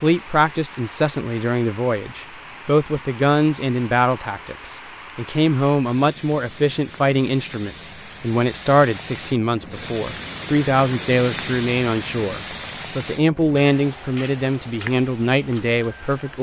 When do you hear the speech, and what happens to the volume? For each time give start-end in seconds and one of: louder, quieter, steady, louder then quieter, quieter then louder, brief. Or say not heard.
0.0-16.3 steady.